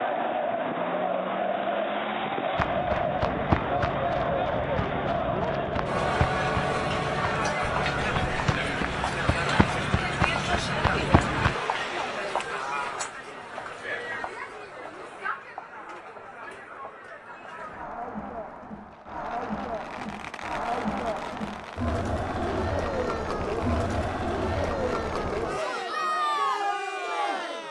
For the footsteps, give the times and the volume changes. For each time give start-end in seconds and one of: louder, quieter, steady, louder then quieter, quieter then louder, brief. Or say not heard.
2.5-11.6 steady.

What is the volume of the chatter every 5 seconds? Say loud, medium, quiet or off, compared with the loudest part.
loud, loud, loud, medium, loud, loud.